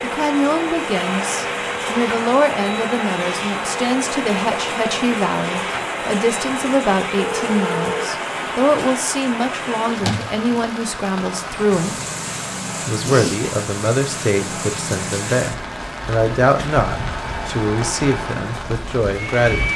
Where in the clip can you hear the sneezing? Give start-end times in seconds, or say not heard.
12.9-13.4.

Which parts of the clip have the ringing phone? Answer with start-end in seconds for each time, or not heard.
7.2-8.2.